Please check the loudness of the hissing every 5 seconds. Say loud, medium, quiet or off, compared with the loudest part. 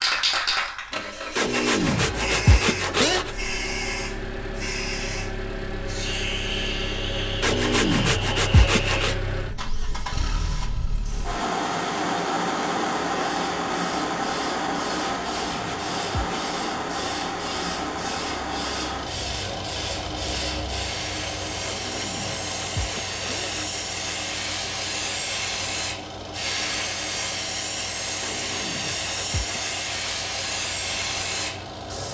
loud, loud, medium, medium, loud, loud, loud.